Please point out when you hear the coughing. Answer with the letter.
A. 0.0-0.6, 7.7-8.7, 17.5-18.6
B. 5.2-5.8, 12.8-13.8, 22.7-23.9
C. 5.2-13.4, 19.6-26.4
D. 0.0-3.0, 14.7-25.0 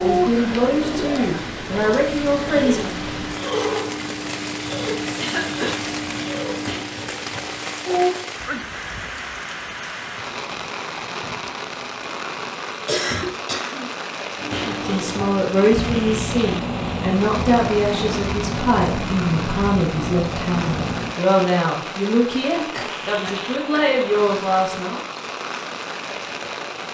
B.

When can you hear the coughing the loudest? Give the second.
13 s.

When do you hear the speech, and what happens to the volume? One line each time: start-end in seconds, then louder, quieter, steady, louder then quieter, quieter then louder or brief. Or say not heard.
0.0-3.0 brief
14.7-25.0 steady.